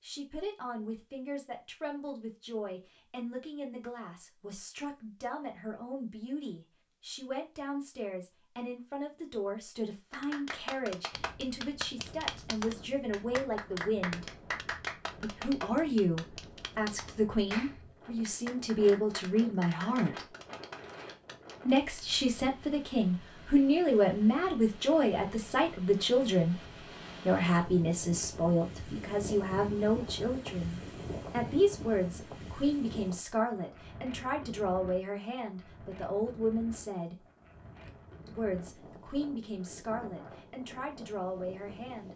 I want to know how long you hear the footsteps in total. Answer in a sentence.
The footsteps can't be heard in this clip.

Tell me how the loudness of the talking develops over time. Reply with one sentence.
The volume of the talking goes up, then down.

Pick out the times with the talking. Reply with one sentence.
You can hear the talking from 0.0 to 14.2 s, from 15.2 to 20.2 s, from 21.6 to 26.6 s, from 27.2 to 37.1 s and from 38.2 to 42.1 s.